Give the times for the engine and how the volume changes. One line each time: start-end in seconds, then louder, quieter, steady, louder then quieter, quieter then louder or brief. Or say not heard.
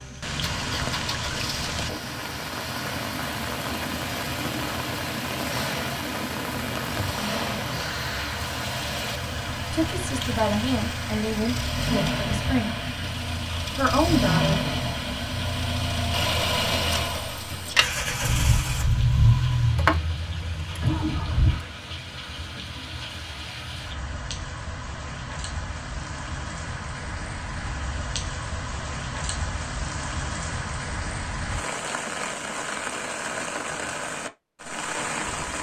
0.4-21.7 louder.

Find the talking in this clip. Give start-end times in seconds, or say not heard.
9.7-12.8, 13.8-14.6.